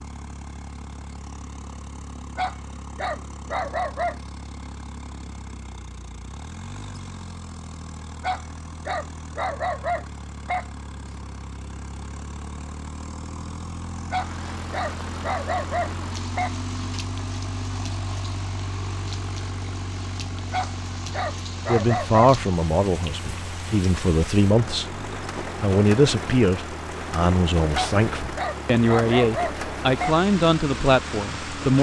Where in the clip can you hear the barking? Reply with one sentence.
You can hear the barking from 2.4 to 4.2 s, from 8.2 to 10.7 s, from 14.1 to 16.6 s, from 20.5 to 22.4 s and from 27.7 to 30.1 s.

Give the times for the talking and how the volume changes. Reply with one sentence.
You can hear the talking from 21.6 to 31.7 s, at a steady volume.